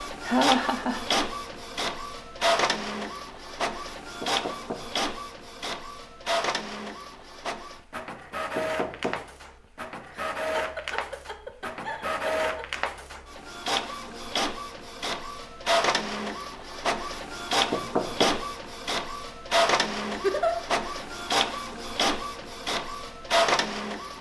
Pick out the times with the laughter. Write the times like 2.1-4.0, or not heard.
0.2-1.0, 10.1-12.7, 20.1-20.6.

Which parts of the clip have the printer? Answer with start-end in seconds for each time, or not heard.
0.0-24.1.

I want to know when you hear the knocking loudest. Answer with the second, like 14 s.
18 s.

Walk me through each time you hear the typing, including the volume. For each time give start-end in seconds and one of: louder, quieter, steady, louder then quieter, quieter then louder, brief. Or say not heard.
not heard.